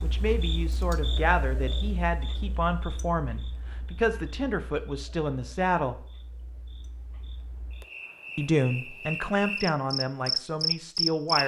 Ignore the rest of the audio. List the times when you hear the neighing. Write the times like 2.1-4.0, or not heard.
not heard.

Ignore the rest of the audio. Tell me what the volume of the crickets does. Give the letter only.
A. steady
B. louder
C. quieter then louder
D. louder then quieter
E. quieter
C.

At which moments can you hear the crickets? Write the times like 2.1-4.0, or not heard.
0.0-11.4.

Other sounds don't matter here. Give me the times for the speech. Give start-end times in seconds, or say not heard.
0.0-6.0, 8.3-11.4.